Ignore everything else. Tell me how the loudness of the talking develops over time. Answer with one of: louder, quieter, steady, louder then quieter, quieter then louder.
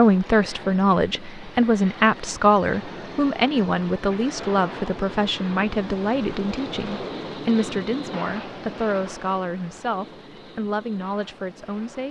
quieter.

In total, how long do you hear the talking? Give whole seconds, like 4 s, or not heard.
12 s.